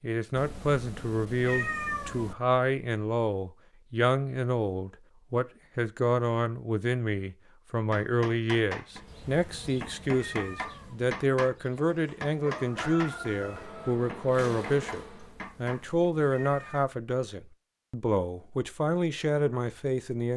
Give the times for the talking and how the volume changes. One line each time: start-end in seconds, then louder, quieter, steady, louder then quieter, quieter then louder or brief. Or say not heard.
0.0-20.3 steady.